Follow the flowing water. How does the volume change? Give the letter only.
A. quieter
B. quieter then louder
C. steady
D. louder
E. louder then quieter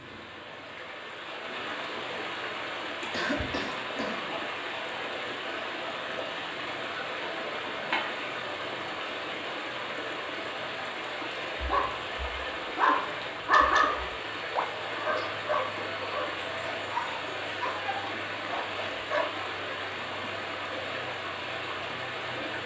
C.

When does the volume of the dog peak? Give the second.
14 s.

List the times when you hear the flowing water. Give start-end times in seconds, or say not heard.
0.0-22.6.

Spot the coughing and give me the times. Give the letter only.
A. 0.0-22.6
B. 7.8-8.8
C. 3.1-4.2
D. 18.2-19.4
C.